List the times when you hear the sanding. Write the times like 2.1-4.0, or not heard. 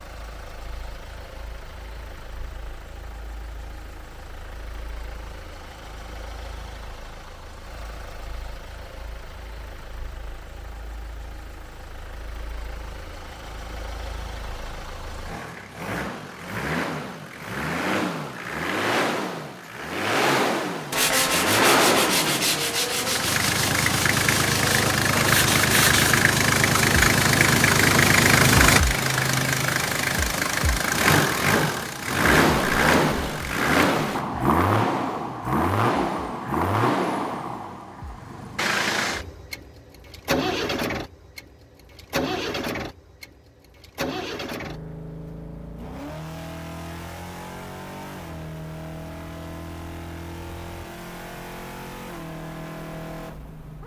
20.9-26.2.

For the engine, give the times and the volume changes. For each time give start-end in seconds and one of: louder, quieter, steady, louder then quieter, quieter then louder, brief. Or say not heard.
0.0-53.8 louder then quieter.